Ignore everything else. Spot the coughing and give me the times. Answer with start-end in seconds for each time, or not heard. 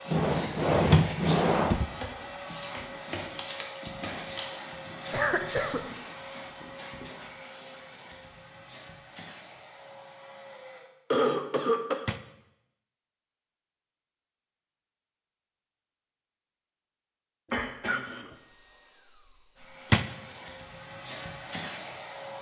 5.1-5.8, 11.1-12.1, 17.5-18.4.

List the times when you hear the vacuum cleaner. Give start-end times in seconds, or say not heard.
0.0-10.9, 18.2-22.3.